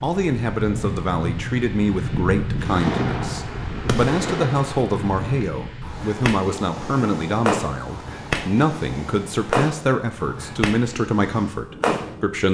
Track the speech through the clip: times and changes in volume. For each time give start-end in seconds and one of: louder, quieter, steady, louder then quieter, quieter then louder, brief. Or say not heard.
0.0-12.4 steady.